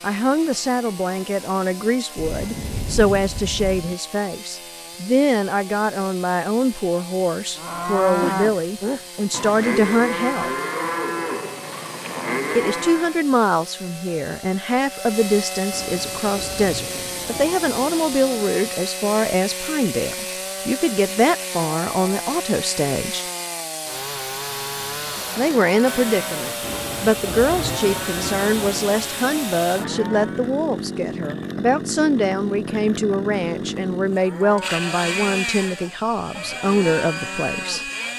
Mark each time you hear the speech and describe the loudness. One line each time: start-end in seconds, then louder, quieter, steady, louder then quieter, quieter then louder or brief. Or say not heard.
0.0-10.6 steady
12.6-23.2 steady
25.4-37.9 steady.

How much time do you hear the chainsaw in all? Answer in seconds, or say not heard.
38 s.